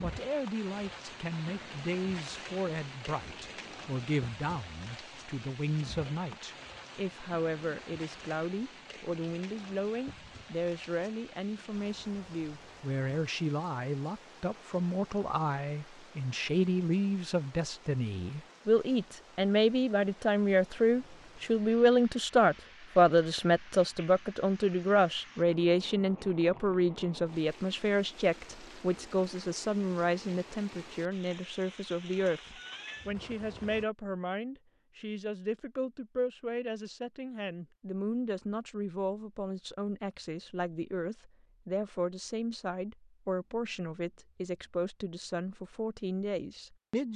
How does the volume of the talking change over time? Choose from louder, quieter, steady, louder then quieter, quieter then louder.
louder then quieter.